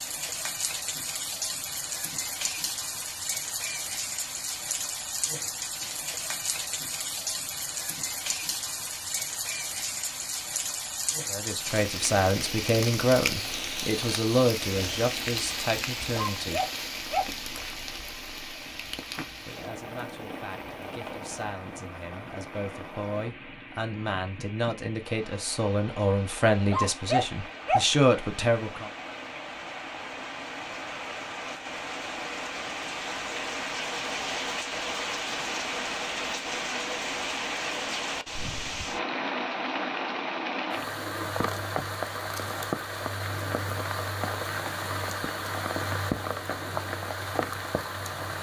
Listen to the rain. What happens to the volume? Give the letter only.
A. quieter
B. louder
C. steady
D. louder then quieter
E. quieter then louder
E.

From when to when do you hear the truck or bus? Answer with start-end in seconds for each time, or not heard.
not heard.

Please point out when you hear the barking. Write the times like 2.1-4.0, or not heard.
16.1-17.2, 26.7-27.9.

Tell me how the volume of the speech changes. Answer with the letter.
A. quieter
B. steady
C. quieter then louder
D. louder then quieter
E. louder
C.